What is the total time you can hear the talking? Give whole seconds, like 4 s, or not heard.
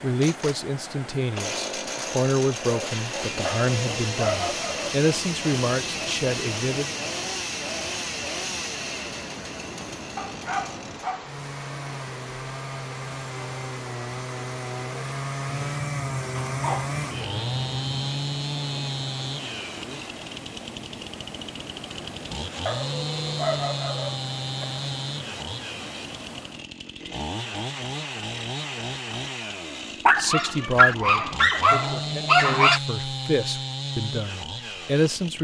12 s.